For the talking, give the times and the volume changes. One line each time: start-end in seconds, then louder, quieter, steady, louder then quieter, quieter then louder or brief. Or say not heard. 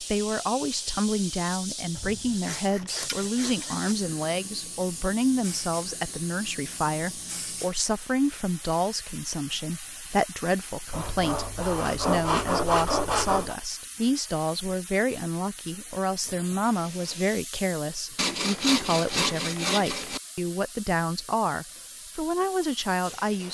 0.0-23.4 steady.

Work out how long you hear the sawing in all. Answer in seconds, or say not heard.
7 s.